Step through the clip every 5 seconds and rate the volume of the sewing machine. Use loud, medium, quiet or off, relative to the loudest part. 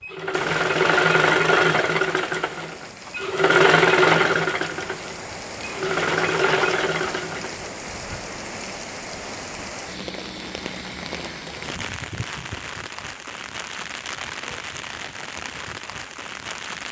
loud, medium, off, off.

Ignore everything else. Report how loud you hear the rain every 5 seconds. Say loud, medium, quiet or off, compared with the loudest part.
medium, loud, loud, loud.